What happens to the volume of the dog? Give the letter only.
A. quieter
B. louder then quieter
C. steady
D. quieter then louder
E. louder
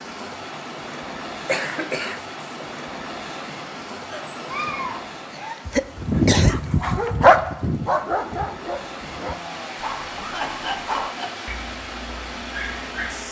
B.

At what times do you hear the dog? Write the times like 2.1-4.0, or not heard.
4.1-13.2.